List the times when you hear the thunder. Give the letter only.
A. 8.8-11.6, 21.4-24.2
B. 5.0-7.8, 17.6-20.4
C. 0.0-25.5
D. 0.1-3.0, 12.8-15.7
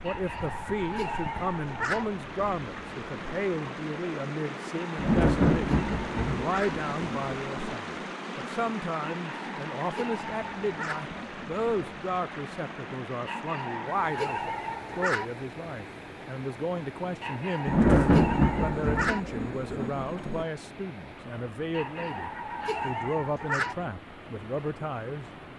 B.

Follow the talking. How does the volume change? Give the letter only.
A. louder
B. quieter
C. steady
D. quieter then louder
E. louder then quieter
C.